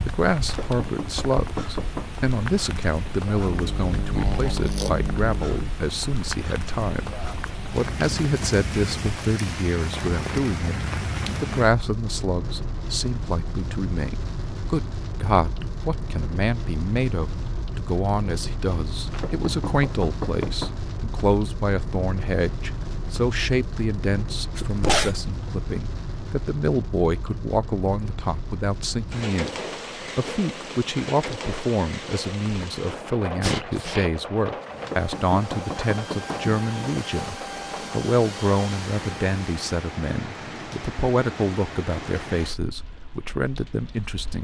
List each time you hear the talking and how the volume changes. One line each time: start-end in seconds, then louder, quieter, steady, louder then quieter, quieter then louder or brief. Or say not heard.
0.0-44.3 steady.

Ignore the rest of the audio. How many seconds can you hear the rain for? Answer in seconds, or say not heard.
44 s.